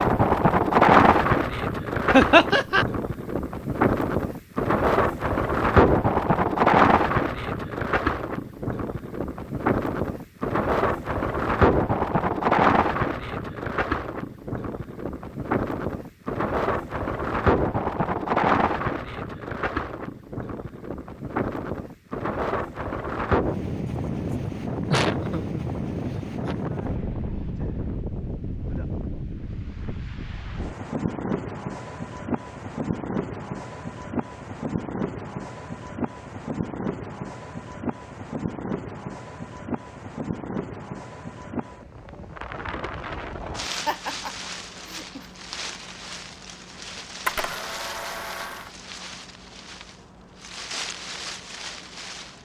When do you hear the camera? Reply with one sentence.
The camera can be heard from 47.2 to 48.7 s.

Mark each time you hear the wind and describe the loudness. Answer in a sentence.
You can hear the wind from 0.0 to 52.4 s, getting quieter.